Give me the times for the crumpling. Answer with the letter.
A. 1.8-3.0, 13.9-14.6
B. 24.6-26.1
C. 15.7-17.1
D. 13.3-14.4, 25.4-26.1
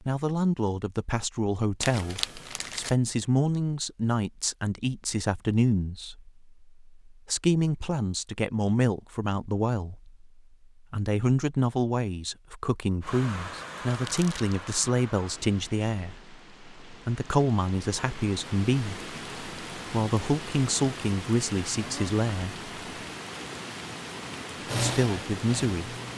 A.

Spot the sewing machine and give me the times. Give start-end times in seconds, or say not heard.
24.6-26.1.